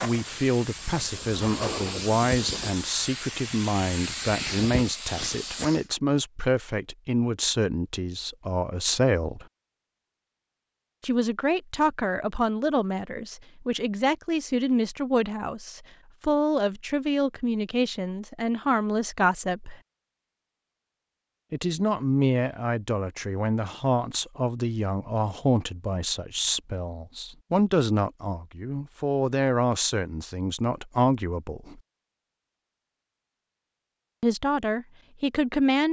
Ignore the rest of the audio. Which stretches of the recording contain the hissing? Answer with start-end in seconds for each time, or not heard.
0.0-5.8.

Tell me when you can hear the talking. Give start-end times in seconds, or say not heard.
0.0-9.4, 11.0-19.8, 21.5-31.8, 34.2-35.8.